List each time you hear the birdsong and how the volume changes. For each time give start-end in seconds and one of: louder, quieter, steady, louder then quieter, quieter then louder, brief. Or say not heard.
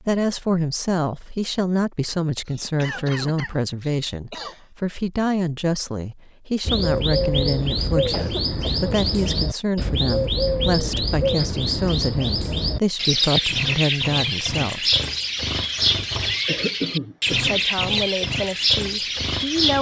6.7-19.7 steady.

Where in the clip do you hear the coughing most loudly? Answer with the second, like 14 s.
17 s.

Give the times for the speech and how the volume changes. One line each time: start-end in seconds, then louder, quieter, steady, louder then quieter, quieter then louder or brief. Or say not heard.
0.0-14.9 steady
17.3-19.7 brief.